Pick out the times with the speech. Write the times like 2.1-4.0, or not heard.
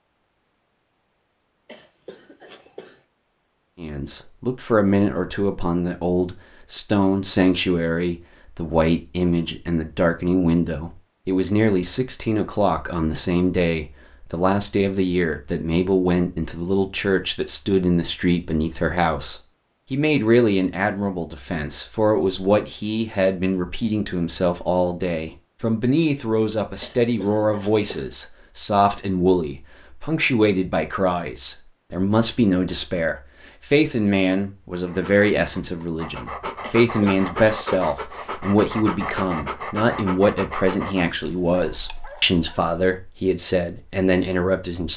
3.8-44.9.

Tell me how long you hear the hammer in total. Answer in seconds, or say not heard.
not heard.